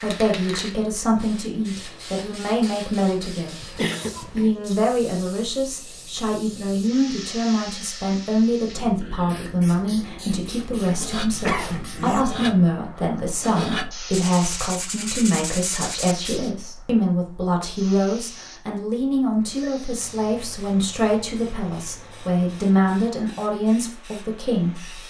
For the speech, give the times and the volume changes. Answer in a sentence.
You can hear the speech from 0.0 to 25.0 s, at a steady volume.